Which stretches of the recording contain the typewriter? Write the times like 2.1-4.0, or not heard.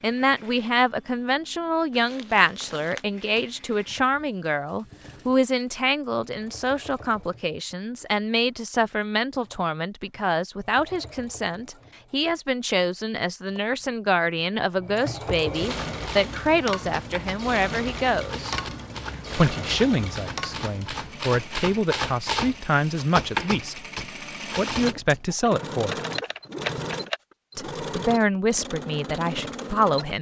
15.7-27.2.